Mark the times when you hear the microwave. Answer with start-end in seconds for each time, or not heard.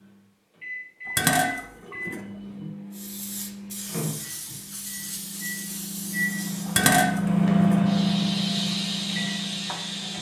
0.0-10.1.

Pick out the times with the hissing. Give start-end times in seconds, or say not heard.
2.9-10.1.